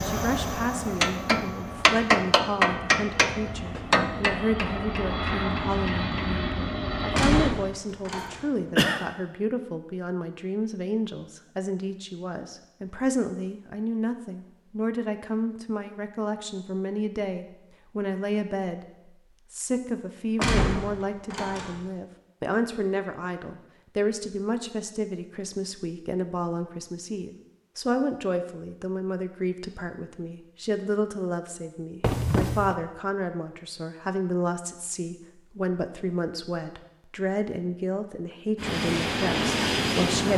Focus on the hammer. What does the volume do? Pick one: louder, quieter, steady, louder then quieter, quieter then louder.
quieter.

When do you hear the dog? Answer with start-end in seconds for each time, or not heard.
not heard.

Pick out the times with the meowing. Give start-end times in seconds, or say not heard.
not heard.